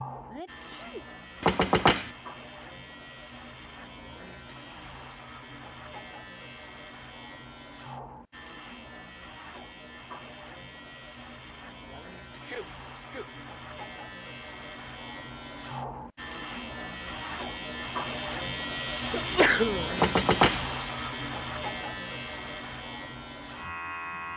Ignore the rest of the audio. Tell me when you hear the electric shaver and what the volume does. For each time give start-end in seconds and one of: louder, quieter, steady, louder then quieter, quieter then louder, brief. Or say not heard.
0.0-24.3 louder.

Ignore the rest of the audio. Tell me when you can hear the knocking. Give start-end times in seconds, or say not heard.
1.4-2.1, 19.9-20.6.